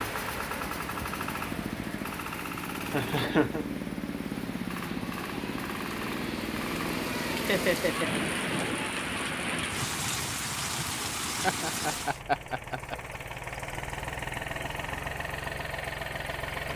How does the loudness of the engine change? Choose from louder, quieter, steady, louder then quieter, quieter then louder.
quieter then louder.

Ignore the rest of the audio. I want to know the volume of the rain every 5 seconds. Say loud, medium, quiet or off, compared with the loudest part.
medium, loud, loud, off.